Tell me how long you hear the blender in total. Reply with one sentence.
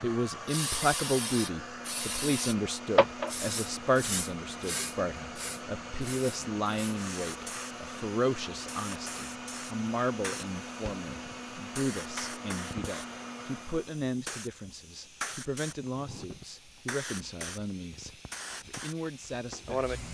You can hear the blender for 14 seconds altogether.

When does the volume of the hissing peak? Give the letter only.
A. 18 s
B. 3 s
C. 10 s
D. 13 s
B.